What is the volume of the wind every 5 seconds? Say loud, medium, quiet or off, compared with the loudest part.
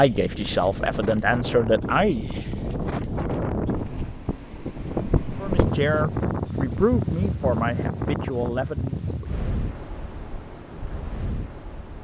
loud, loud, medium.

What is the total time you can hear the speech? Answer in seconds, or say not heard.
6 s.